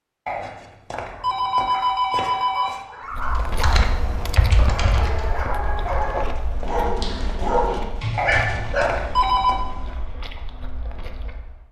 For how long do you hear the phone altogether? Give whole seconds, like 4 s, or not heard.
4 s.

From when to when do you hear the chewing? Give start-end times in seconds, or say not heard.
3.1-11.6.